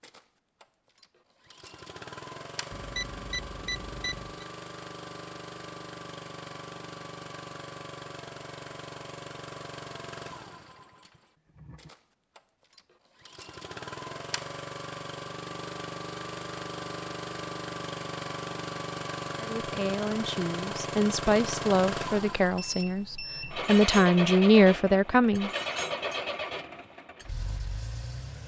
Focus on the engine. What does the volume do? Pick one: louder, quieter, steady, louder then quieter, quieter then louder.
louder.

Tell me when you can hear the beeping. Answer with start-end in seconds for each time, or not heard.
2.7-4.5, 22.6-23.6.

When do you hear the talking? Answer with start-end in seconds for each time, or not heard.
19.4-25.5.